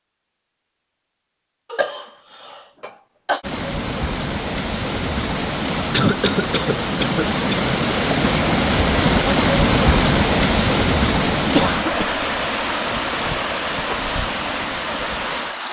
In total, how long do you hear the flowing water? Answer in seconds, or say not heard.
12 s.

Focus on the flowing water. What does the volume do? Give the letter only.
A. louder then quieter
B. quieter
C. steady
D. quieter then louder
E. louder
A.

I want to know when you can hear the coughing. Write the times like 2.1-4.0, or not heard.
1.7-3.4, 5.9-7.8, 11.3-12.2.